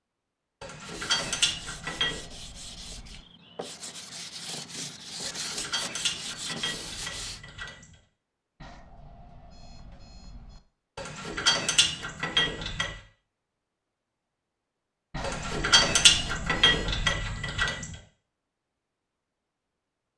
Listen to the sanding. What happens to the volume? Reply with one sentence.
The loudness of the sanding goes up.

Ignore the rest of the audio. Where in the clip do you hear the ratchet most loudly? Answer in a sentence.
The loudest moment of the ratchet is at 16 seconds.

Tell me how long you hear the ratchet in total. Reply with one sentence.
You can hear the ratchet for 9 seconds altogether.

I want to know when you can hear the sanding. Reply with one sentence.
The sanding can be heard from 0.8 to 7.4 s.